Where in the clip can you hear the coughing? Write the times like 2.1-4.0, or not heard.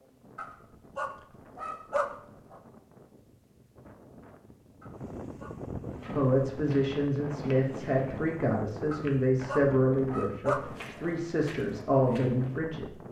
not heard.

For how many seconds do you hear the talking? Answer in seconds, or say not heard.
7 s.